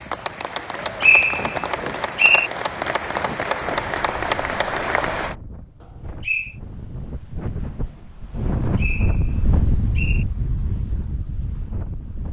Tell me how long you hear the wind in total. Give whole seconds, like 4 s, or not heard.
12 s.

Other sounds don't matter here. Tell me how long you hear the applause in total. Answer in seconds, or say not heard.
5 s.